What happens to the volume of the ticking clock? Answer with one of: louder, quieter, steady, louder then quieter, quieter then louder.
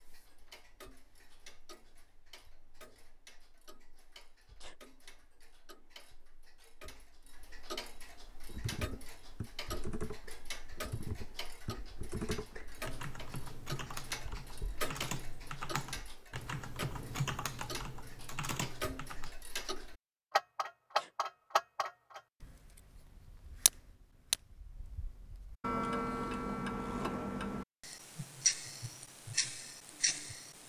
louder.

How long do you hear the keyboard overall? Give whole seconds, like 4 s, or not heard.
11 s.